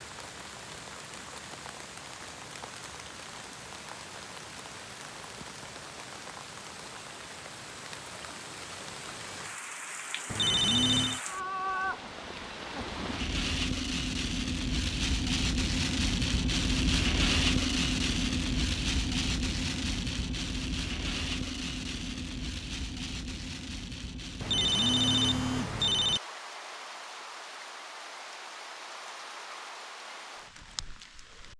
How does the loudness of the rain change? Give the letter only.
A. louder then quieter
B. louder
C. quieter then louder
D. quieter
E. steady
A.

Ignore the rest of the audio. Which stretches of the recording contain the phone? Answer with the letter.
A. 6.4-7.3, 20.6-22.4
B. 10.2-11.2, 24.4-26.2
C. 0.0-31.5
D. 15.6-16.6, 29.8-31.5
B.